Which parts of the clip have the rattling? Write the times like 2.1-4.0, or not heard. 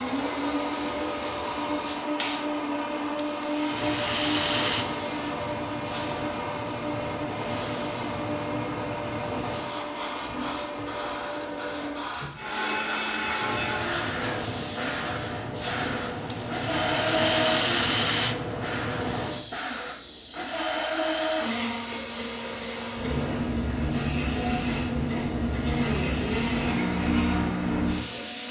3.1-4.8, 16.2-18.4.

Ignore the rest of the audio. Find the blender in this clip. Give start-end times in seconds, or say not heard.
0.0-28.4.